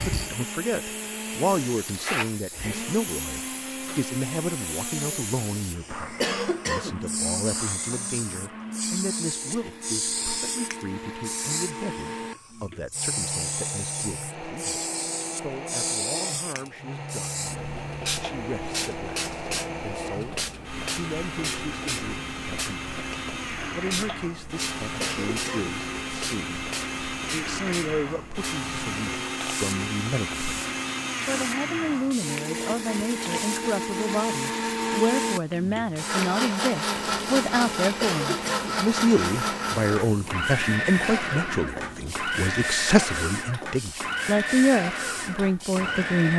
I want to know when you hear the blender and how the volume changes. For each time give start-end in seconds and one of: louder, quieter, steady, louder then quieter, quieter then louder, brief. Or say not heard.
0.0-46.3 louder.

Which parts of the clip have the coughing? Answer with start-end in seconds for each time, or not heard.
6.2-7.0, 25.0-25.8, 38.0-38.9.